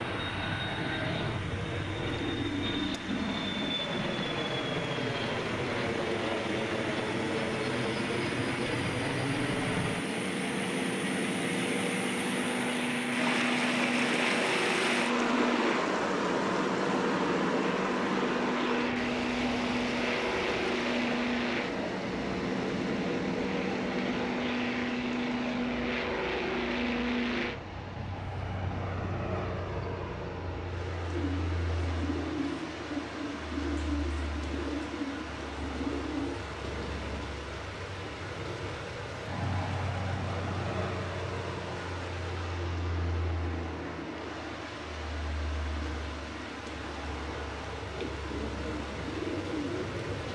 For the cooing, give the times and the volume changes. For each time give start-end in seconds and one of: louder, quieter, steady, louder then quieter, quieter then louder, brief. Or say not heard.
31.0-37.3 steady
47.9-50.2 brief.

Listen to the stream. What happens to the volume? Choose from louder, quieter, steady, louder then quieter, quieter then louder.
louder then quieter.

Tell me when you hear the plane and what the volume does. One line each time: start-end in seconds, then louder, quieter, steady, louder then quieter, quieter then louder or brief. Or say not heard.
0.0-50.2 quieter.